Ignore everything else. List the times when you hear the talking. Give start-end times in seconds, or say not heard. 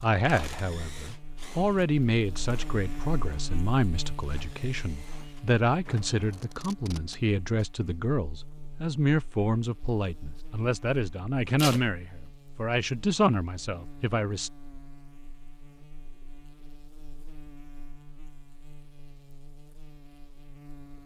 0.0-14.5.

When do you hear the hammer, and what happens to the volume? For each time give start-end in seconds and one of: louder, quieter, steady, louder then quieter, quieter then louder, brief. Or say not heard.
not heard.